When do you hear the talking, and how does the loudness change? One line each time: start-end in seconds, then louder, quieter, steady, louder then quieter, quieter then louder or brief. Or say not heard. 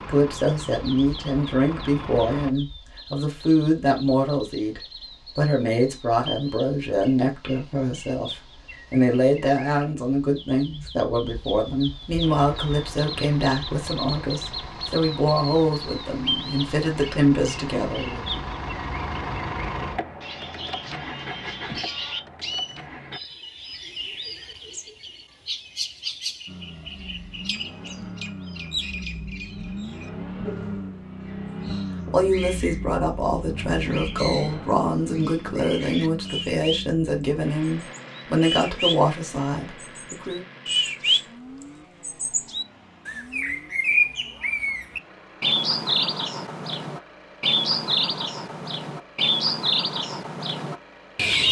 0.1-18.2 steady
32.0-40.5 steady.